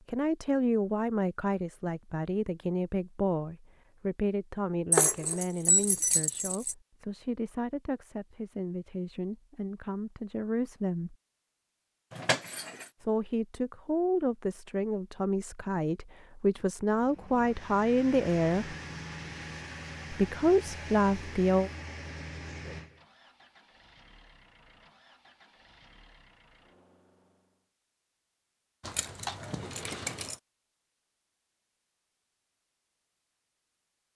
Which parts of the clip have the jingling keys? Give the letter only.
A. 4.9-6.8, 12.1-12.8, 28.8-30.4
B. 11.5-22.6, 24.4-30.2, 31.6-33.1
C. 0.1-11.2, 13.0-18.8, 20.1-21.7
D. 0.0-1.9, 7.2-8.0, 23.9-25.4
A.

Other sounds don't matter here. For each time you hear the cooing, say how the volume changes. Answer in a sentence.
You can't hear the cooing here.